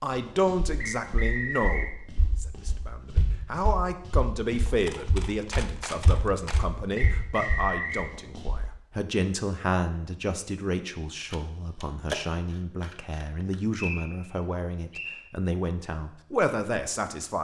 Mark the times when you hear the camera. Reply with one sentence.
You can hear the camera from 4.8 to 6.7 s and from 11.3 to 13.9 s.